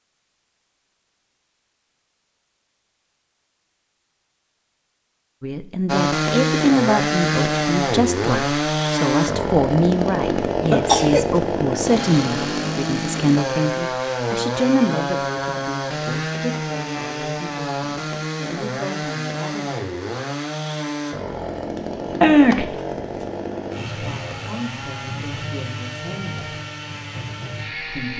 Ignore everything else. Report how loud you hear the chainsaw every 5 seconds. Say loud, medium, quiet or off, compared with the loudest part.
off, loud, loud, medium, medium, medium.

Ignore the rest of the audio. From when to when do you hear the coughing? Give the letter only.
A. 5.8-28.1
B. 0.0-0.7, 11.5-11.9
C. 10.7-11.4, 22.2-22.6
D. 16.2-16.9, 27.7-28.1
C.